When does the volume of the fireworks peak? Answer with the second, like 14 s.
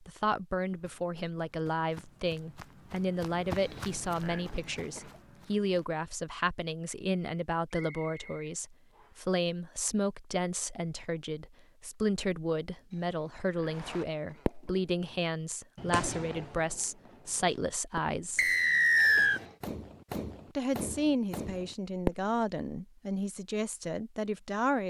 22 s.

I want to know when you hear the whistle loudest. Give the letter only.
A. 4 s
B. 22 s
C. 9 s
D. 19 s
D.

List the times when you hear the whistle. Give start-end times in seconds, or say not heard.
7.8-9.2, 18.4-19.4.